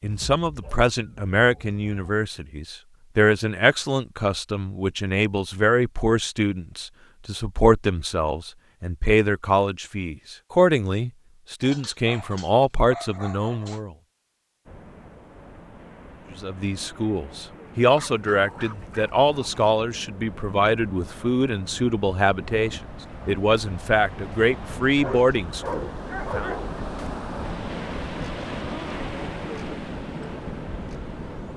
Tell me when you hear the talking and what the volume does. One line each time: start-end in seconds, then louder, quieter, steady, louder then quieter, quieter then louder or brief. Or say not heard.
0.0-13.9 steady
16.4-26.5 steady.